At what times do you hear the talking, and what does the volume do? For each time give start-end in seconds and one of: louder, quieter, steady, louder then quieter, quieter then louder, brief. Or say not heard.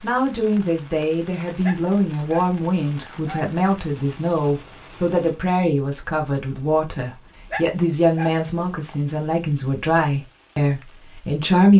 0.0-11.7 steady.